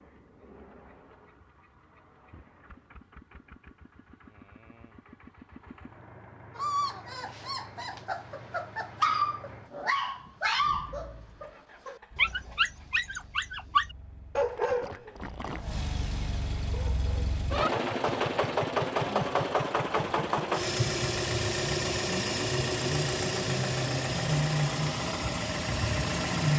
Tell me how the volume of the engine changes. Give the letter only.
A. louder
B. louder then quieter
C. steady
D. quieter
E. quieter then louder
A.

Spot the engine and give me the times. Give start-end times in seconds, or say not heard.
0.0-26.5.